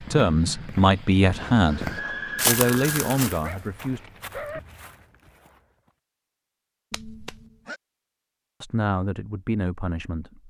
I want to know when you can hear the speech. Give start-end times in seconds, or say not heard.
0.0-4.0, 8.6-10.4.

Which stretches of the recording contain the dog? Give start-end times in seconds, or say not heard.
3.4-4.6.